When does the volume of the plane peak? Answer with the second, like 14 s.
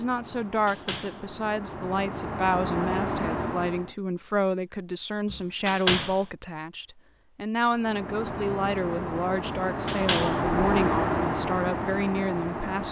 11 s.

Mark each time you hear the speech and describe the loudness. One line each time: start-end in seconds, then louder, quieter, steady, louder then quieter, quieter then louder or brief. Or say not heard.
0.0-12.8 steady.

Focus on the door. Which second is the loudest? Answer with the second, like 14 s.
6 s.